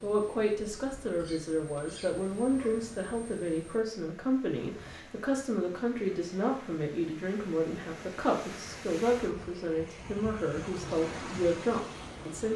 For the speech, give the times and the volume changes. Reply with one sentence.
You can hear the speech from 0.0 to 12.5 s, at a steady volume.